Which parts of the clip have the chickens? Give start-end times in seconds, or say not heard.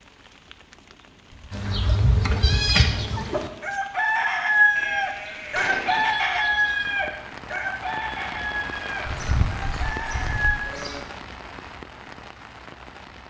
1.5-10.7.